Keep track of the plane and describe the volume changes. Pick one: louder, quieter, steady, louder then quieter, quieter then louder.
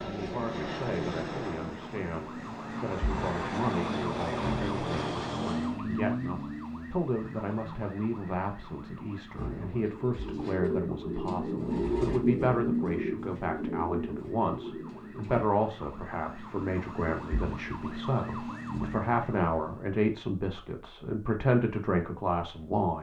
quieter then louder.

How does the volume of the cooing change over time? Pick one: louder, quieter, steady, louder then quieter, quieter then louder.
louder then quieter.